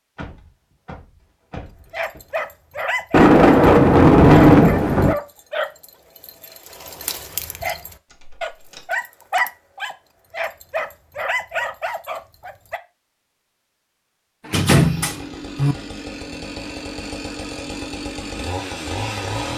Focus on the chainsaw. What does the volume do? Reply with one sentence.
The loudness of the chainsaw goes up.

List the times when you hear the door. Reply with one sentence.
The door can be heard from 0.1 to 2.4 s, from 8.1 to 8.9 s and from 14.4 to 15.8 s.